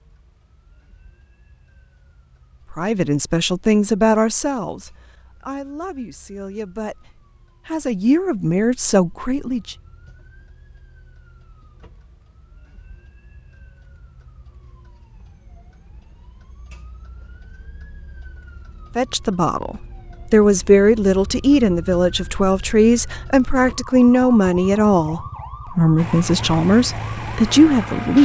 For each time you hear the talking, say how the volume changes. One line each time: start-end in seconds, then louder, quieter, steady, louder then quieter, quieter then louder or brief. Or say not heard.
2.7-9.8 quieter then louder
18.9-28.2 steady.